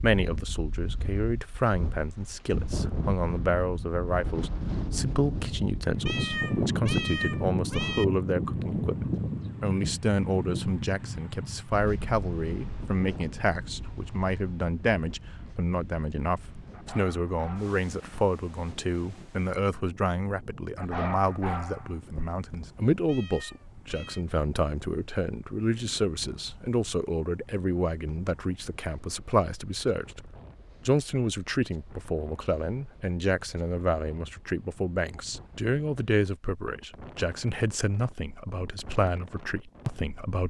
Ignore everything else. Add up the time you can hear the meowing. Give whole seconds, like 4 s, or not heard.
3 s.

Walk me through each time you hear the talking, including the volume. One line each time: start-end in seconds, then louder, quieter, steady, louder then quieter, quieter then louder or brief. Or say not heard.
0.0-40.4 steady.